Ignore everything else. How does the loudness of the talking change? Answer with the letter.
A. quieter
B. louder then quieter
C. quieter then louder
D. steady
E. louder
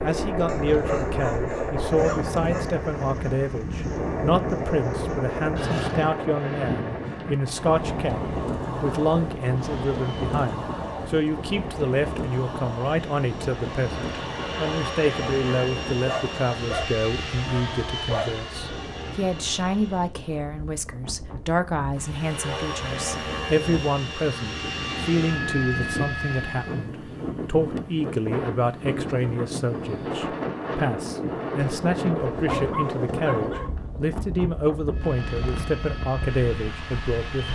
D.